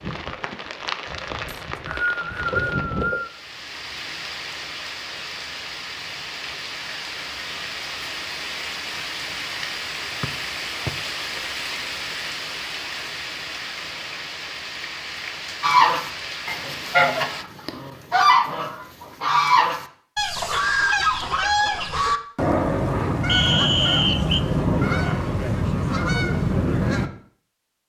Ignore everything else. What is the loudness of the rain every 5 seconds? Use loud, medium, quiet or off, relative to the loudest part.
loud, loud, loud, loud, off, off.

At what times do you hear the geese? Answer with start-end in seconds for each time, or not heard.
15.6-27.1.